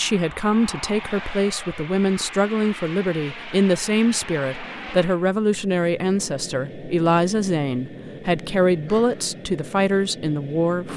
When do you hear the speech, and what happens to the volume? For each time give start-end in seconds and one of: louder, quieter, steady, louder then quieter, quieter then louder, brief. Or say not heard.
0.0-10.9 steady.